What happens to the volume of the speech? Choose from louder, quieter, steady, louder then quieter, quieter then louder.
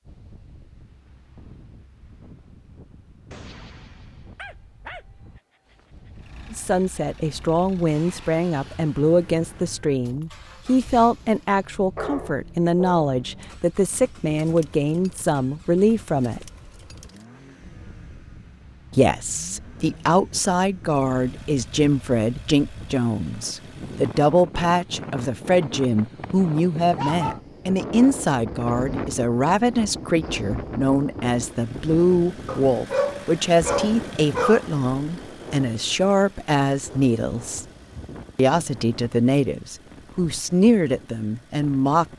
steady.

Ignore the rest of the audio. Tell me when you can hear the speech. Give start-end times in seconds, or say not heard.
6.5-16.5, 18.9-37.6, 38.4-42.0.